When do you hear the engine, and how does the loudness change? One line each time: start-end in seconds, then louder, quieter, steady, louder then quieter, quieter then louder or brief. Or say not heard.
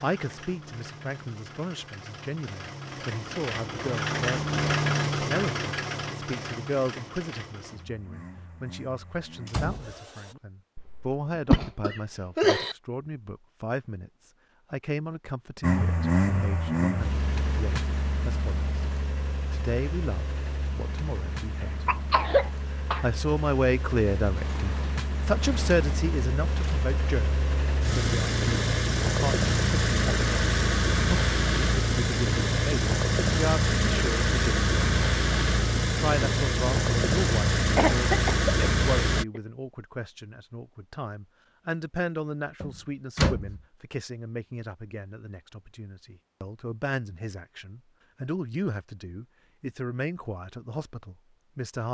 0.0-10.3 louder then quieter
15.6-39.2 quieter then louder.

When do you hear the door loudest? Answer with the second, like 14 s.
43 s.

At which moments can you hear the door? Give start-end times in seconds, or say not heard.
9.4-10.4, 24.4-26.9, 42.6-43.6.